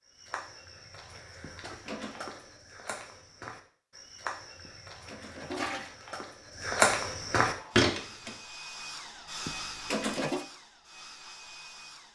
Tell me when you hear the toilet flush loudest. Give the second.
10 s.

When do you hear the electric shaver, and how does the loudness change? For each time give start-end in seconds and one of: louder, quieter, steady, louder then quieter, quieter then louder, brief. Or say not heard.
not heard.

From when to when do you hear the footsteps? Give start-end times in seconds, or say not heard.
0.1-8.3.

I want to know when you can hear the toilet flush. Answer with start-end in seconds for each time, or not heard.
1.4-2.2, 4.7-6.0, 9.4-10.4.